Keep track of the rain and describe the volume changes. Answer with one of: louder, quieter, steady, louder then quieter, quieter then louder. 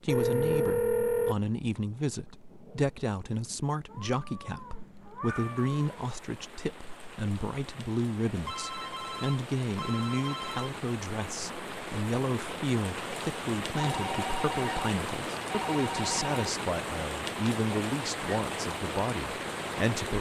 louder.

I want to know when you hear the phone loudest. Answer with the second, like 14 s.
1 s.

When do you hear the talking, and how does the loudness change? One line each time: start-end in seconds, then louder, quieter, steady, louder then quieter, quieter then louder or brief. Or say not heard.
0.0-20.1 steady.